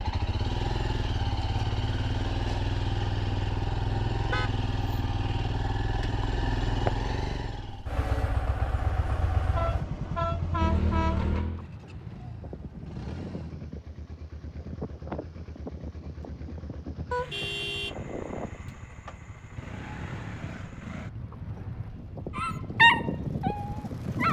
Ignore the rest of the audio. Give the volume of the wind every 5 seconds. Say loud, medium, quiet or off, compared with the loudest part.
off, off, medium, medium, loud.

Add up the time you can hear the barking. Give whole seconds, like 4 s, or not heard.
2 s.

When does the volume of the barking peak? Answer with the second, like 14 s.
23 s.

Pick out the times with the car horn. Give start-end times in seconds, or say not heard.
4.1-4.5, 8.8-11.3, 17.1-17.9.